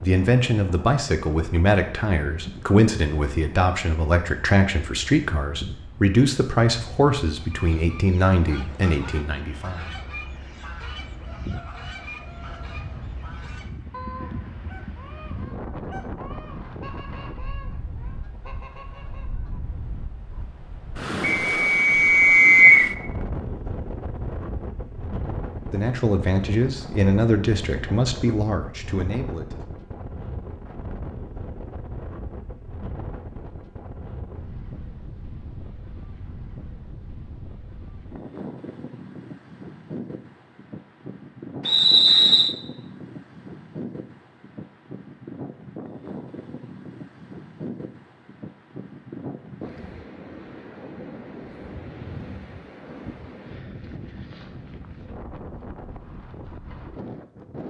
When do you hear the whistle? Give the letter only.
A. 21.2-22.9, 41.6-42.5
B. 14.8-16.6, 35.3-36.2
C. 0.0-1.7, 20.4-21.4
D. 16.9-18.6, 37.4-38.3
A.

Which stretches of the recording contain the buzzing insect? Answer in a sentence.
You can't hear the buzzing insect here.